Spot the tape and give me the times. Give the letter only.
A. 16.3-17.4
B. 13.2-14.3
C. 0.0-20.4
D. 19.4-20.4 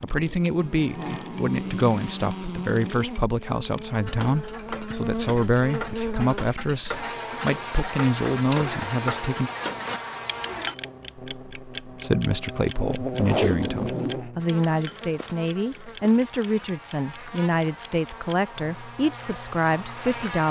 B.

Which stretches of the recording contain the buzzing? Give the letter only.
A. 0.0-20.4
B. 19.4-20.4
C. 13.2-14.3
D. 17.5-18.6
A.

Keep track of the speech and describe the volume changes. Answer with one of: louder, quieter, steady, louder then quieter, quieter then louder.
steady.